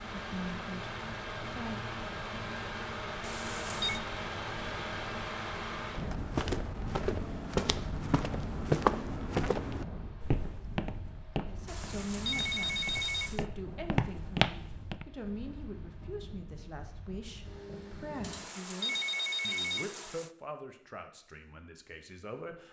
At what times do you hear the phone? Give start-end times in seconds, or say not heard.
3.2-4.0, 11.7-13.4, 18.2-20.3.